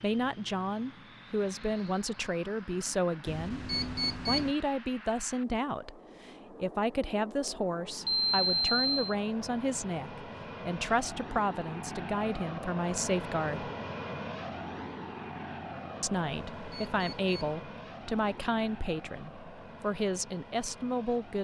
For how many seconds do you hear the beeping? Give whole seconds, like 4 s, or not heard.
3 s.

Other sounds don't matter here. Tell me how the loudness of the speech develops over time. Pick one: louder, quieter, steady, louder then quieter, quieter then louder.
steady.